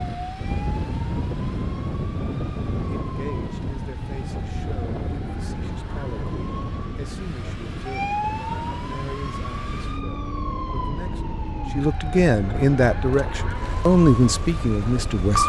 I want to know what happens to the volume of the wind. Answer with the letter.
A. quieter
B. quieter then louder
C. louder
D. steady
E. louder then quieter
A.